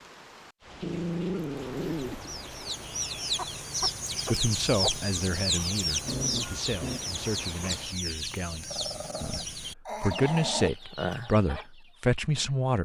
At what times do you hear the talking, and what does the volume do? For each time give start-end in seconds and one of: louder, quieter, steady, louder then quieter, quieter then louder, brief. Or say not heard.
4.2-12.7 quieter then louder.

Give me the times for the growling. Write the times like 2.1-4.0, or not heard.
0.8-2.4, 6.0-7.0, 8.7-10.7.